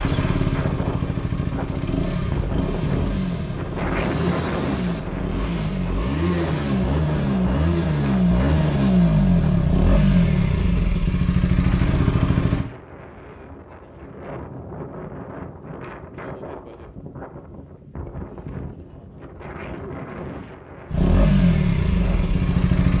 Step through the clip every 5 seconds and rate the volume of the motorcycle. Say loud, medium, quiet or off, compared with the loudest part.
medium, loud, loud, off, loud.